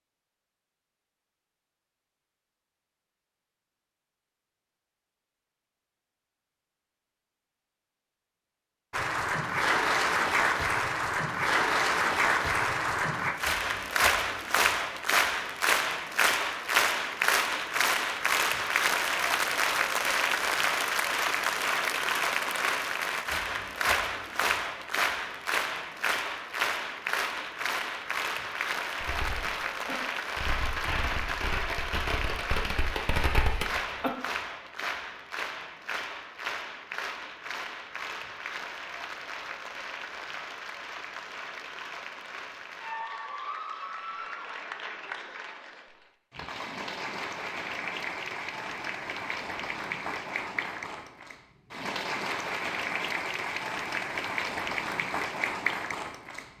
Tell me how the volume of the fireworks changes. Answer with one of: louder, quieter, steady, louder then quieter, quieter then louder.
louder.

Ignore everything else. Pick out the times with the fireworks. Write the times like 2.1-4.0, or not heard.
28.9-34.1.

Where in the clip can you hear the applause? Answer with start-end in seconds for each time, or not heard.
8.9-56.5.